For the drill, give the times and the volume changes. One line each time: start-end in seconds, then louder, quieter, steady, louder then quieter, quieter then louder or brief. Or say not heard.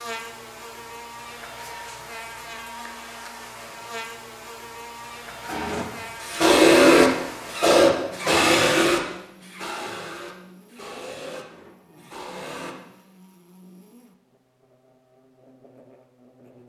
5.5-12.8 quieter.